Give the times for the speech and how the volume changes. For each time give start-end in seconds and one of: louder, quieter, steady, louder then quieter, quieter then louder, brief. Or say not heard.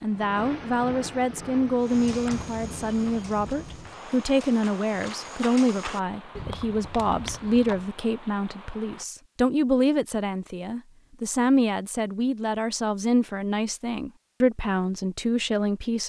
0.0-16.0 steady.